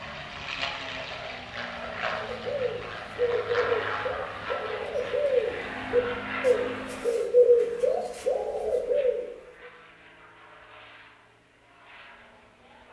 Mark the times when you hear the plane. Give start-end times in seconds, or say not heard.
0.0-12.8.